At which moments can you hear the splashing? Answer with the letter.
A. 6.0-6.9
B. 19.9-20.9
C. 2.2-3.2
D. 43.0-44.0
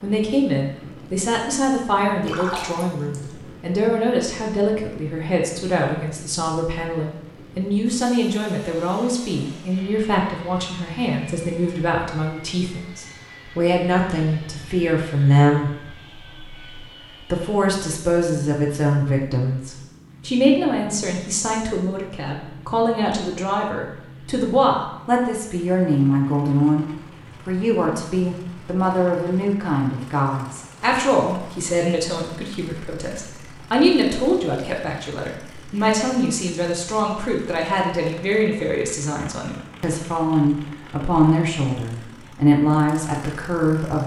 C.